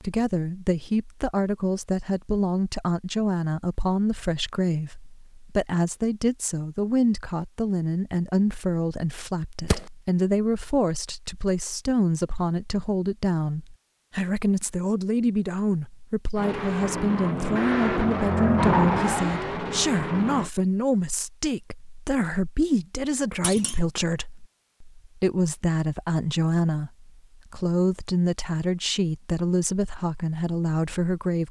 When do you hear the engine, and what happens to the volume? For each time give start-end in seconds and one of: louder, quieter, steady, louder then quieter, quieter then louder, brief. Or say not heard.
16.4-20.5 louder then quieter.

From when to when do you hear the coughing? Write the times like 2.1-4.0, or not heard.
not heard.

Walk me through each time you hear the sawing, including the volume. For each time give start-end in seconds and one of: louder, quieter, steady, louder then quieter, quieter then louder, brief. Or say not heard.
not heard.